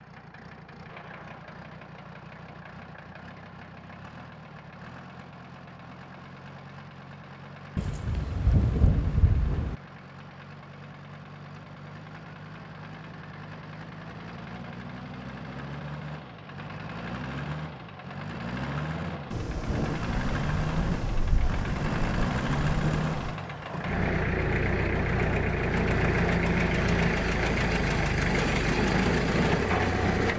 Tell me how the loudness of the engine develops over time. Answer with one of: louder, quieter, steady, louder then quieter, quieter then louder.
louder.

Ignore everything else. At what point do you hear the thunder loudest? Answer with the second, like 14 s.
9 s.